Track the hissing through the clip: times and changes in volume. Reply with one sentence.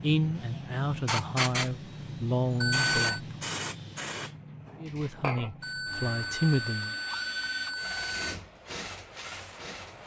The hissing can be heard from 0.0 to 10.0 s, getting quieter.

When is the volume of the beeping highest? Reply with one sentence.
The loudest moment of the beeping is at 3 seconds.